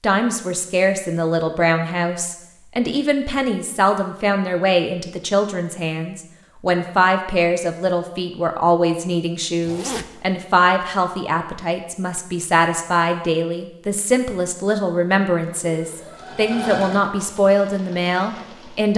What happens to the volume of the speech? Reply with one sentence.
The volume of the speech stays about the same.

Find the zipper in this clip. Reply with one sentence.
You can hear the zipper from 9.6 to 10.2 s.